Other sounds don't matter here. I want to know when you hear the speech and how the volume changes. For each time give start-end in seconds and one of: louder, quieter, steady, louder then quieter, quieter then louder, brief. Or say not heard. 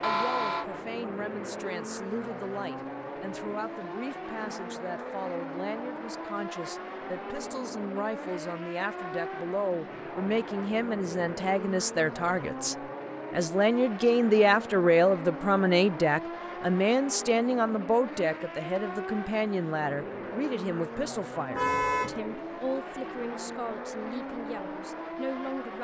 0.0-25.7 louder then quieter.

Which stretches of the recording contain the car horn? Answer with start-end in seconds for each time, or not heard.
0.0-0.7, 21.5-22.2.